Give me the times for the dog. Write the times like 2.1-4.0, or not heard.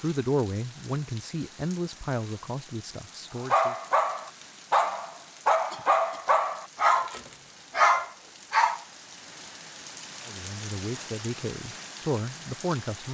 3.4-8.8.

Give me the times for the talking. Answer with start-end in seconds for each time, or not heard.
0.0-3.8, 10.2-13.0.